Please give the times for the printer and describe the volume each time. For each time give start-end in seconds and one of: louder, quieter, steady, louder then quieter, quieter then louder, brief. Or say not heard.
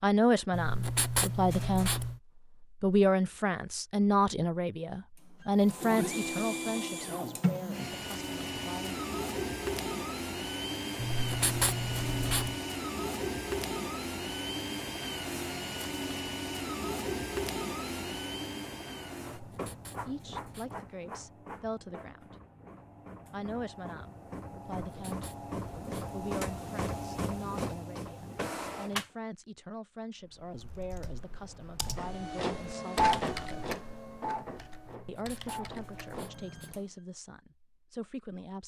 5.4-29.1 quieter then louder
31.9-36.9 quieter.